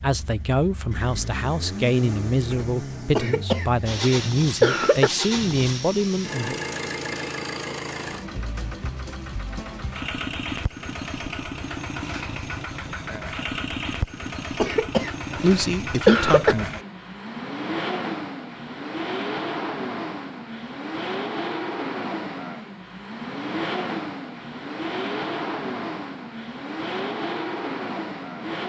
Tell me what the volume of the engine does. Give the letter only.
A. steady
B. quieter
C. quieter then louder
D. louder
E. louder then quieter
A.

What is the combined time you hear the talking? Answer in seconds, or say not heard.
8 s.